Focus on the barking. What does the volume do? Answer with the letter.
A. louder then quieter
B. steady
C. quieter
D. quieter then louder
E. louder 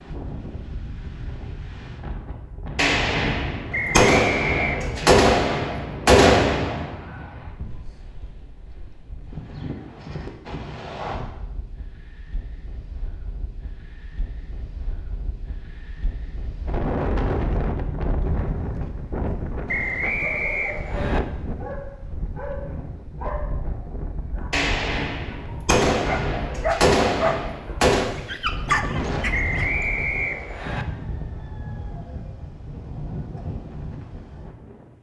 D.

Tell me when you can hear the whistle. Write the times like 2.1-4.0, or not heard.
3.7-4.8, 19.6-21.2, 29.3-30.9.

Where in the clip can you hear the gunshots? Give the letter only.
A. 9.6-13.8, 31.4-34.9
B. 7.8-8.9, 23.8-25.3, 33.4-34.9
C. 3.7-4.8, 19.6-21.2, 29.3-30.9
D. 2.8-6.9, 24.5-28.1
D.